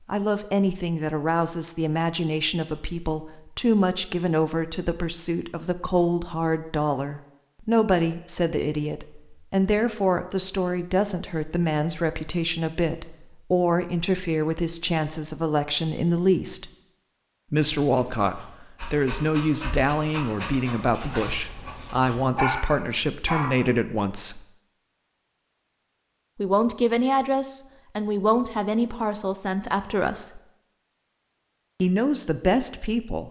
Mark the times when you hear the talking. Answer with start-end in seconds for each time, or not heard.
0.1-16.7, 17.5-24.4, 26.4-30.4, 31.8-33.2.